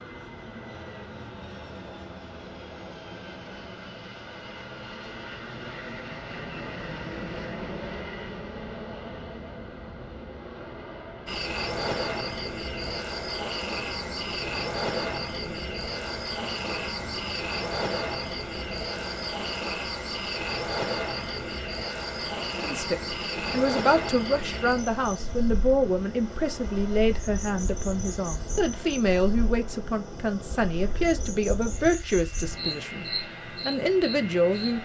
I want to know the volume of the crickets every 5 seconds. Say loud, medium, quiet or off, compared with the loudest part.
off, off, loud, loud, loud, quiet, medium.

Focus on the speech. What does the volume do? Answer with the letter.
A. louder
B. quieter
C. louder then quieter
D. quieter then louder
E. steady
E.